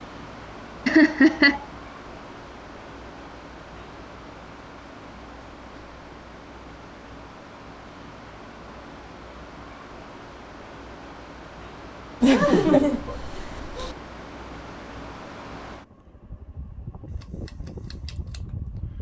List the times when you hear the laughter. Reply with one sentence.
The laughter can be heard from 0.8 to 1.6 s and from 12.2 to 13.9 s.